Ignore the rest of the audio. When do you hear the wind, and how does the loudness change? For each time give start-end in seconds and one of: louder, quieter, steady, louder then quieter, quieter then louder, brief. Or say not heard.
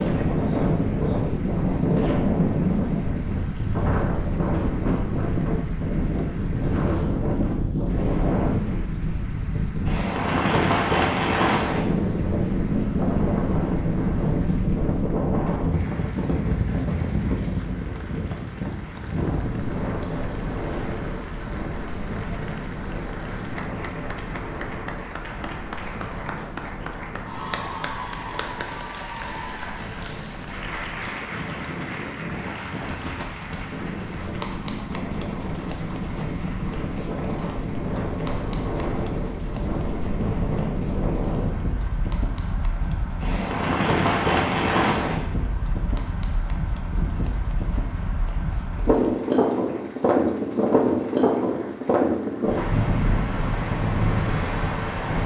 0.0-55.2 quieter then louder.